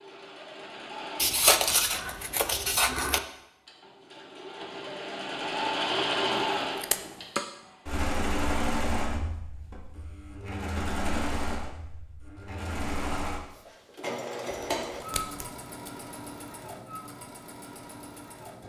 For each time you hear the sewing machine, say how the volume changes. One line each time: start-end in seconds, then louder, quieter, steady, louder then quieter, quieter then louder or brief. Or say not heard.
0.0-18.6 louder then quieter.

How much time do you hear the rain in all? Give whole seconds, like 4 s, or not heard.
not heard.